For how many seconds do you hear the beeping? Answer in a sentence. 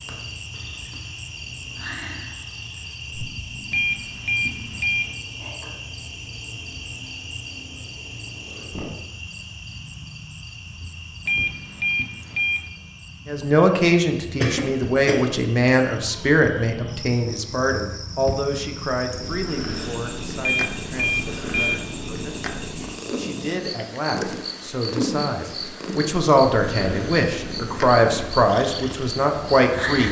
You can hear the beeping for 4 seconds altogether.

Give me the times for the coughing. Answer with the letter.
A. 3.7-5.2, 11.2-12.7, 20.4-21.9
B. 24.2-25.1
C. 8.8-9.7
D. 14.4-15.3
D.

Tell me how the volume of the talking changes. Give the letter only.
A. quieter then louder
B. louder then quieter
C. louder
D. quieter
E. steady
A.